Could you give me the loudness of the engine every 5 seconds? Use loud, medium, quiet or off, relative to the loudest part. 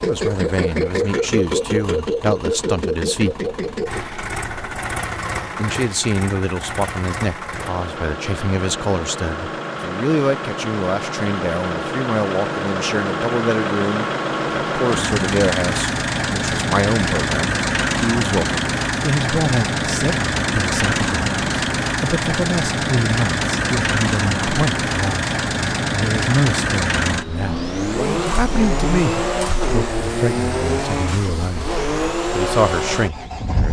loud, medium, loud, loud, loud, loud, loud.